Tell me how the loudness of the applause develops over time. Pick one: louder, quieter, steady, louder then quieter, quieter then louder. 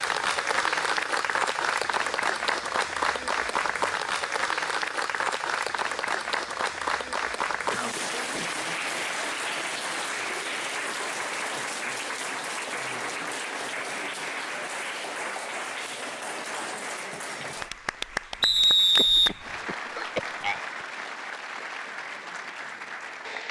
quieter.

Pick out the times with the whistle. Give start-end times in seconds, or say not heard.
18.4-19.4.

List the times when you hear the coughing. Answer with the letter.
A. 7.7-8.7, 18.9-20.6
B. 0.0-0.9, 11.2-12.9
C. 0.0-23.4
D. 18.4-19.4
A.